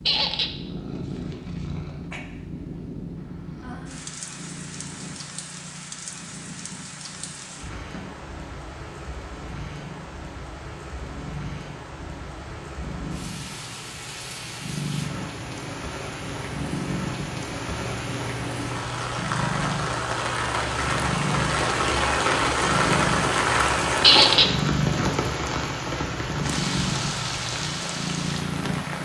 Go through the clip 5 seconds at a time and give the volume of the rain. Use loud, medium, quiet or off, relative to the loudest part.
quiet, quiet, quiet, medium, loud, medium.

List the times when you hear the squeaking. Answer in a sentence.
You can hear the squeaking from 0.1 to 0.6 s and from 24.0 to 24.6 s.